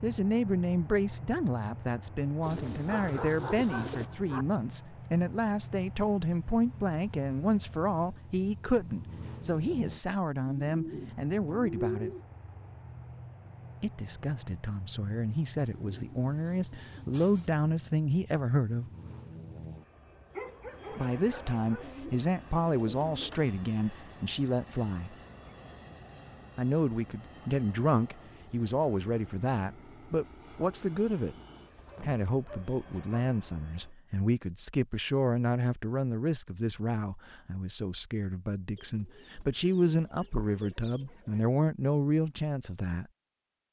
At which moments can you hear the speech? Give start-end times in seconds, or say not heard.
0.0-12.1, 13.8-18.9, 20.9-25.1, 26.6-31.4, 32.0-43.1.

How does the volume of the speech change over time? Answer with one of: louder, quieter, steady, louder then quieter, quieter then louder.
steady.